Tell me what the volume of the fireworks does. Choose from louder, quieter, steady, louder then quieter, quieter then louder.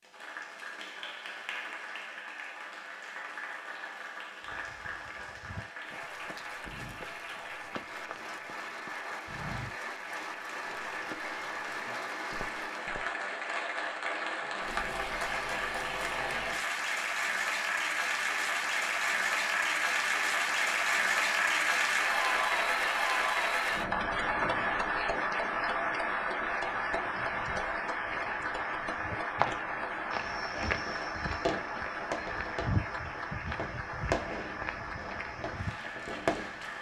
quieter then louder.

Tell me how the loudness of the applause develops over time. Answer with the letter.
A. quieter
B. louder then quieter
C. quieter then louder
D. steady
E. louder
B.